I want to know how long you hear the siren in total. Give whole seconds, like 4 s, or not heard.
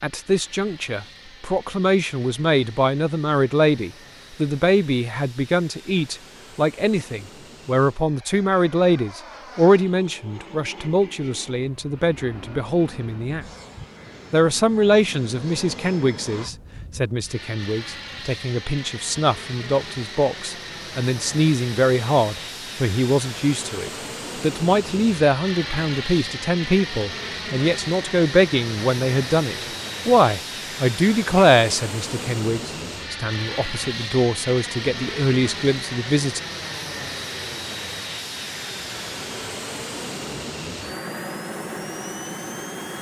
not heard.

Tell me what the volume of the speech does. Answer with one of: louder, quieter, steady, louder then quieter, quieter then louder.
steady.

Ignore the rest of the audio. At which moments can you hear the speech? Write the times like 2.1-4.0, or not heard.
0.0-13.4, 14.3-36.4.